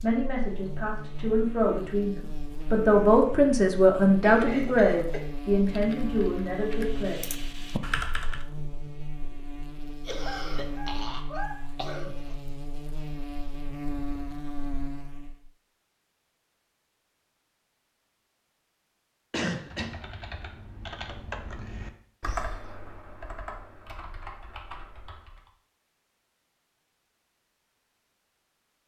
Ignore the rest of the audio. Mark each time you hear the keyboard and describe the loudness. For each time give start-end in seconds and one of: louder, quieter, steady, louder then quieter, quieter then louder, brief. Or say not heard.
5.7-8.4 brief
19.5-25.5 louder then quieter.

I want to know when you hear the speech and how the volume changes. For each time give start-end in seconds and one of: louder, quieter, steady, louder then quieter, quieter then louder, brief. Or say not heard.
0.0-7.2 louder then quieter.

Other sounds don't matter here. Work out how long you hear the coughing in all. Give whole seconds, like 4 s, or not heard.
4 s.